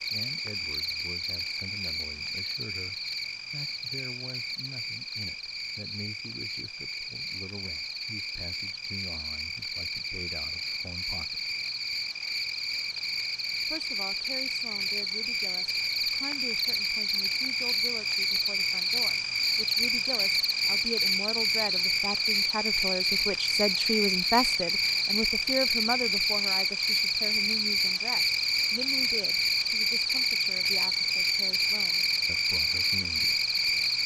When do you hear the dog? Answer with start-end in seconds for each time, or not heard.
not heard.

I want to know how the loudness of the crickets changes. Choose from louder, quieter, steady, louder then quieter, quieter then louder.
louder.